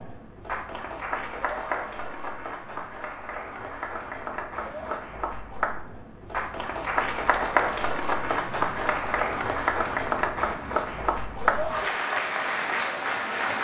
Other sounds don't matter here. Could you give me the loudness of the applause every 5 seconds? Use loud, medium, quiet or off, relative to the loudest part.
medium, loud, loud.